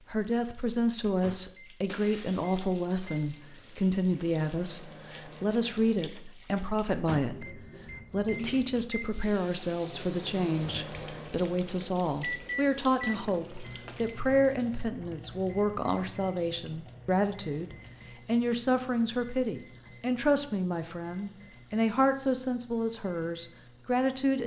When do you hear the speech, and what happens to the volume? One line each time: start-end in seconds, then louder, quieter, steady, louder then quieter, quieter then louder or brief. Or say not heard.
0.1-24.4 steady.